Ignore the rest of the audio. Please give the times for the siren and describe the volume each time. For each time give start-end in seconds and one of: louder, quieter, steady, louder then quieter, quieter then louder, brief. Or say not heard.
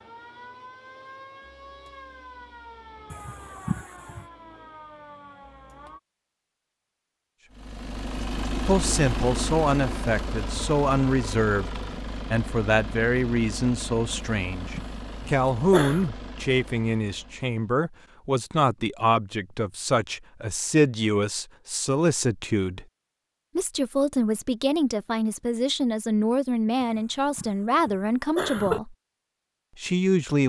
0.0-6.0 steady.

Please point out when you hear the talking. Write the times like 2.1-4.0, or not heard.
8.7-22.9, 23.6-28.9, 29.8-30.4.